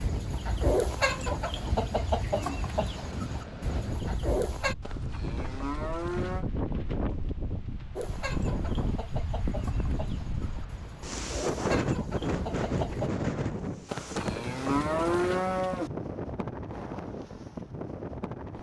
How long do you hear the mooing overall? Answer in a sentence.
You can hear the mooing for 4 seconds altogether.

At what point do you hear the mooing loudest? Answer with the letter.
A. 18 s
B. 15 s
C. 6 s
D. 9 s
B.